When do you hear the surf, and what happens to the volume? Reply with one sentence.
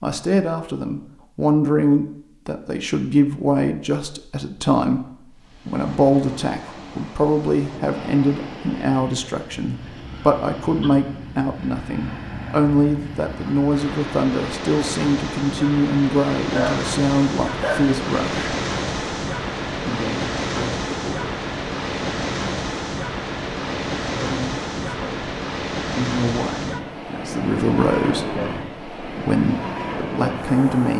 You can hear the surf from 5.3 to 30.9 s, getting louder.